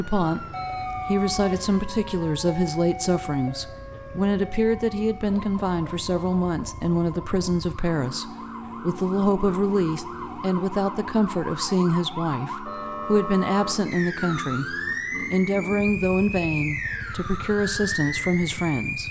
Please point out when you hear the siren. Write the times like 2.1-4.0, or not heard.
0.0-19.0.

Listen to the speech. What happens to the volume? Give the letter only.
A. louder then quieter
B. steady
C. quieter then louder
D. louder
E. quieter
B.